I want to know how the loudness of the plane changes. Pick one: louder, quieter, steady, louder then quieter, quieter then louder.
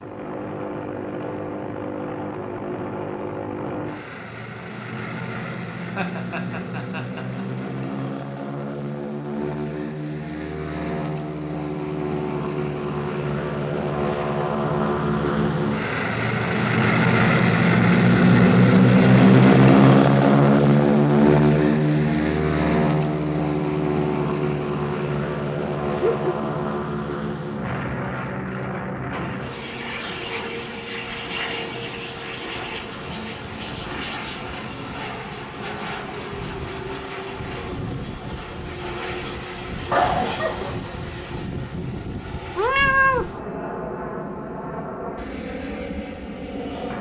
louder then quieter.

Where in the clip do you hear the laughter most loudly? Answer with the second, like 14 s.
40 s.